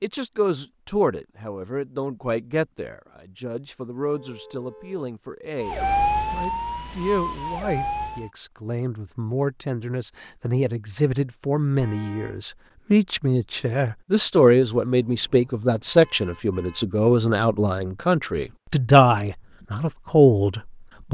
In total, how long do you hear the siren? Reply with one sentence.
The siren can be heard for 3 seconds in total.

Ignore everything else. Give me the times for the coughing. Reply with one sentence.
You can't hear the coughing here.